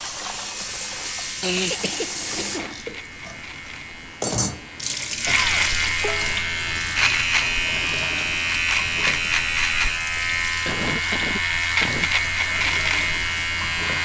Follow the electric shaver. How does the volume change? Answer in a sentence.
The loudness of the electric shaver goes up.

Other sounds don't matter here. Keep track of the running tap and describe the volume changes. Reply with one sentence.
The loudness of the running tap goes down.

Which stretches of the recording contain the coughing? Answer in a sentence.
The coughing can be heard from 1.4 to 2.8 s, from 5.2 to 6.4 s and from 10.7 to 12.1 s.